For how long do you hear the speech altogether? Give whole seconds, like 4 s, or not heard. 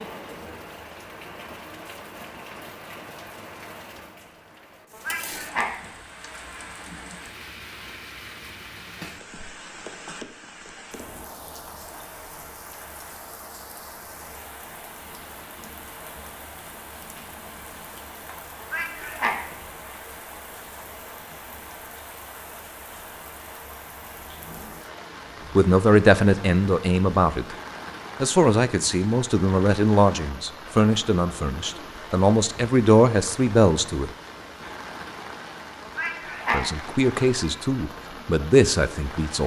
11 s.